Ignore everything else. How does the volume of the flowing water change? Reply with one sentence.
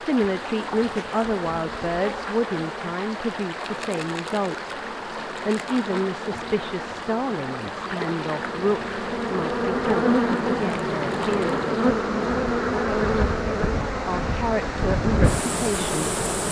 The volume of the flowing water stays about the same.